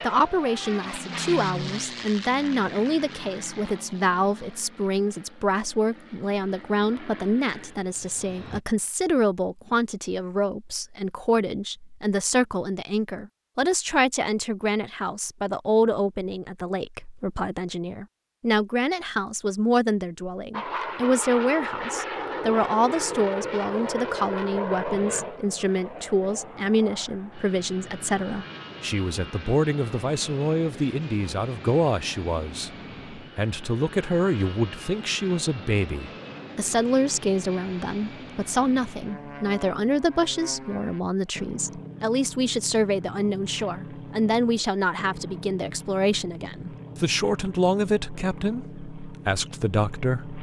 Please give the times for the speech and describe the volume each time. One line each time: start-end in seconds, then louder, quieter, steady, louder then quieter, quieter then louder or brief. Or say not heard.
0.0-50.3 steady.